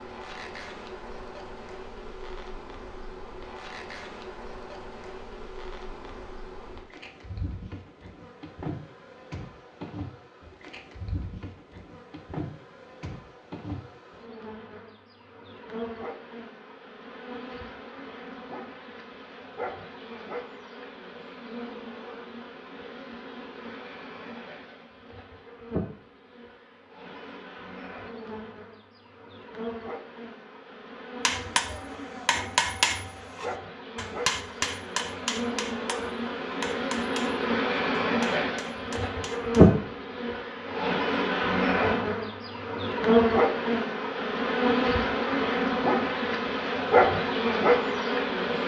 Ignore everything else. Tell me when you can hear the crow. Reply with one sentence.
The crow can't be heard in this clip.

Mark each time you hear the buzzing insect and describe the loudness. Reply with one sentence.
The buzzing insect can be heard from 0.0 to 48.6 s, getting louder.